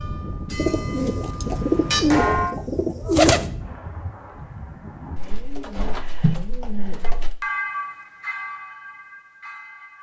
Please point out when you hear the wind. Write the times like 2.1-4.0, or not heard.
0.0-5.2.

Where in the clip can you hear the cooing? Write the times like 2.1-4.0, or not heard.
0.6-3.5, 5.2-7.3.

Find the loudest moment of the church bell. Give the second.
2 s.